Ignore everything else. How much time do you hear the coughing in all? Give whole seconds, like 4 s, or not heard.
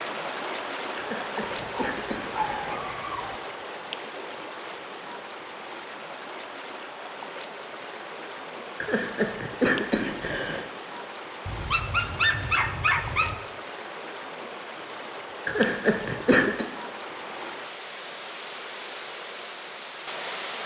5 s.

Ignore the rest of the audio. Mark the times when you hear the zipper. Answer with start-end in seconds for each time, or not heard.
not heard.